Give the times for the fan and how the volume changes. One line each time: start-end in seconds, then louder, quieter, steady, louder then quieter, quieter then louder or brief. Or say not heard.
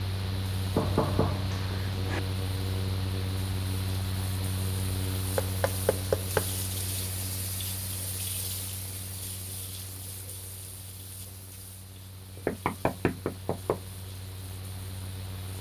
0.0-15.5 quieter.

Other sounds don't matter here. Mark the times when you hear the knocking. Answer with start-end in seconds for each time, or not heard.
0.7-2.2, 5.3-6.5, 12.3-13.8.